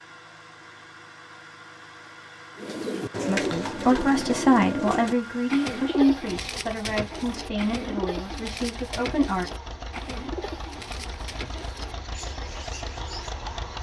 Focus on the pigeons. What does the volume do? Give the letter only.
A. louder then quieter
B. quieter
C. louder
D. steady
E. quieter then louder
B.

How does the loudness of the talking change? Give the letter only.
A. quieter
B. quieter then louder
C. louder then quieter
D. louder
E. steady
A.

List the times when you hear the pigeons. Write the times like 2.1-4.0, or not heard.
2.5-13.4.